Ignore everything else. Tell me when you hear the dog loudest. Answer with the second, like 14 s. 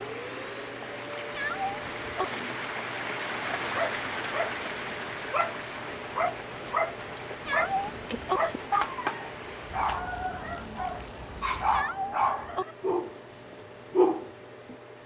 14 s.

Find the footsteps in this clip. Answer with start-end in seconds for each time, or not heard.
not heard.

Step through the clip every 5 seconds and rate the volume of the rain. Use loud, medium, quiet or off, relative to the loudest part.
loud, medium, medium.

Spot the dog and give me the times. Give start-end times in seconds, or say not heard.
3.6-13.2, 13.9-14.8.